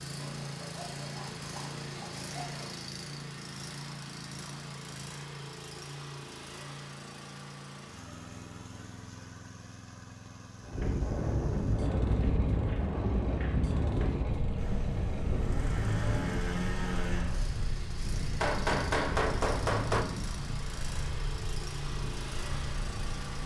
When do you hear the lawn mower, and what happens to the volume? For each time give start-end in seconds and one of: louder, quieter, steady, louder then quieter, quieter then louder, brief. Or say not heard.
0.0-23.4 quieter then louder.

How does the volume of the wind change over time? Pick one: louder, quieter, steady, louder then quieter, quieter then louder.
quieter.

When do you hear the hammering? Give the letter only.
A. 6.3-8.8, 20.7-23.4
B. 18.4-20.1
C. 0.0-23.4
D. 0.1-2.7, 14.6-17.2
B.